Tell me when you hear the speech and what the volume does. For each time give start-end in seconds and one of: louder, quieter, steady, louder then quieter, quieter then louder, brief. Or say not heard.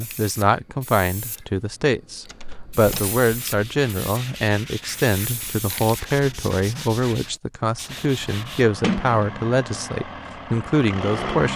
0.0-11.5 steady.